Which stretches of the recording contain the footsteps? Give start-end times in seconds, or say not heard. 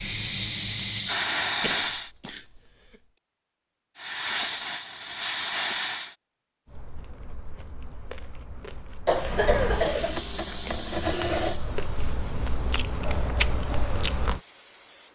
not heard.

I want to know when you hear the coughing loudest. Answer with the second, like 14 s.
10 s.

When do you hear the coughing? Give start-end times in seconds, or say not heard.
1.6-2.6, 9.1-10.2.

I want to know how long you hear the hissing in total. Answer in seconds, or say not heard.
10 s.